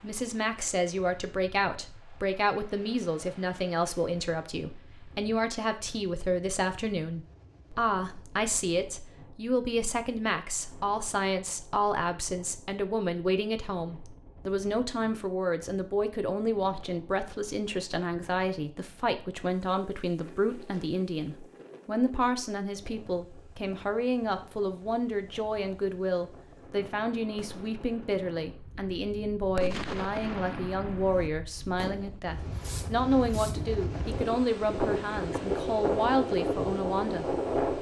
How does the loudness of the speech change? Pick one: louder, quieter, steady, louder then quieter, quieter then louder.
steady.